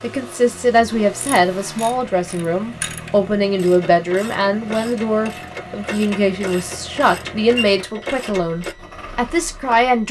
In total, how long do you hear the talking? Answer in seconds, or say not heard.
10 s.